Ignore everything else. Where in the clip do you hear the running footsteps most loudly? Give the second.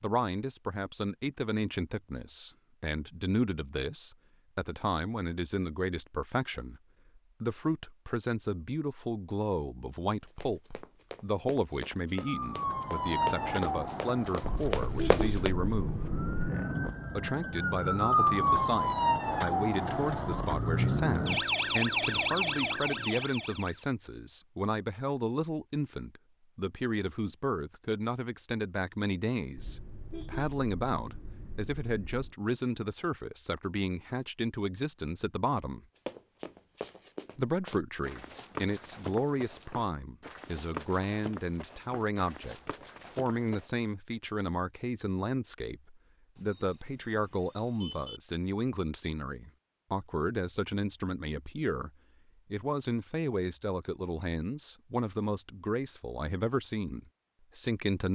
15 s.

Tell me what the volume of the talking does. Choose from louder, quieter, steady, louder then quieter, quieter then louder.
steady.